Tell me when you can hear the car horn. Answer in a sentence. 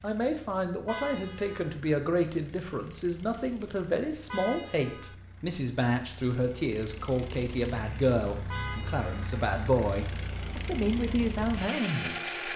The car horn can be heard from 0.8 to 1.8 s, from 4.3 to 5.2 s and from 8.5 to 9.3 s.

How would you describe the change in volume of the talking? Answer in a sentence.
The loudness of the talking stays about the same.